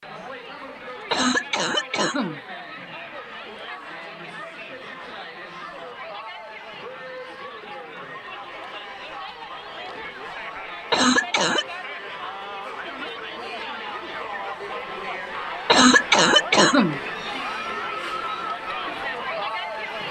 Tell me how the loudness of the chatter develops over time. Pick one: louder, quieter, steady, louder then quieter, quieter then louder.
louder.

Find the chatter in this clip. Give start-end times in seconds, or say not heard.
0.0-20.0.